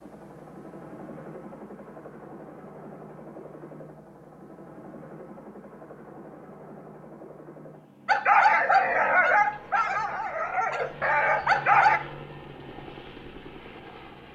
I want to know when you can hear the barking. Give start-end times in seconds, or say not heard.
8.1-12.0.